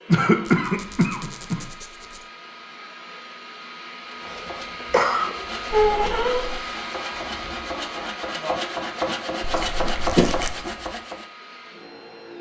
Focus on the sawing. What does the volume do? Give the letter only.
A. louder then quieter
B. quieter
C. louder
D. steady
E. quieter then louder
C.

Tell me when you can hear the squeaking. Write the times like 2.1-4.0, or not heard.
0.5-2.2, 5.7-6.6, 9.4-10.6.